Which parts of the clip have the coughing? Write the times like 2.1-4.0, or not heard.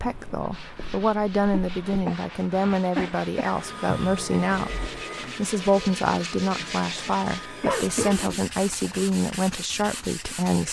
1.5-3.5, 7.6-9.0.